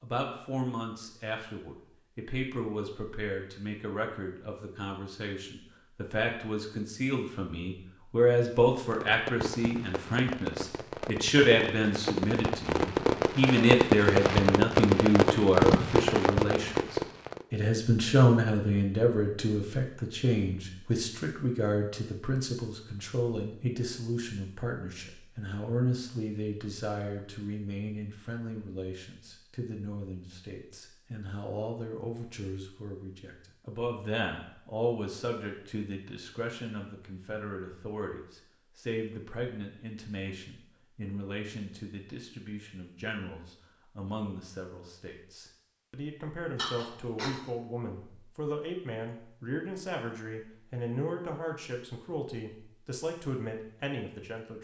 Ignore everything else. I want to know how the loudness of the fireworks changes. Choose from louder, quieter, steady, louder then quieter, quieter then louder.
louder.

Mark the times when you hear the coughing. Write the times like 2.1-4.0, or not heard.
46.5-47.4.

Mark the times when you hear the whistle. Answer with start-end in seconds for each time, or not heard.
not heard.